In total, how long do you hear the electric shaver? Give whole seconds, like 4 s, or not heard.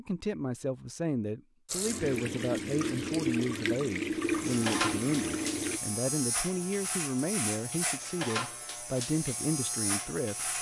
6 s.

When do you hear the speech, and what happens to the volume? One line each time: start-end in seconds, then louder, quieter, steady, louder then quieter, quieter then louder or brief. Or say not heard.
0.0-10.5 steady.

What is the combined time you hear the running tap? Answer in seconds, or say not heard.
4 s.